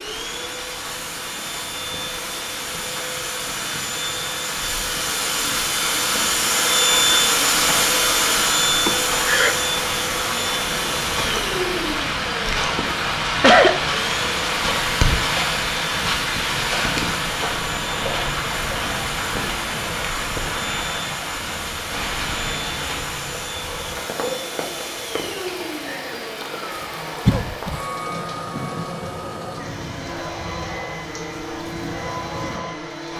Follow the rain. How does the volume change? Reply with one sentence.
The loudness of the rain goes up, then down.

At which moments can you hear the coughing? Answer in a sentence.
The coughing can be heard from 8.8 to 9.6 s, from 12.5 to 13.8 s and from 27.2 to 27.8 s.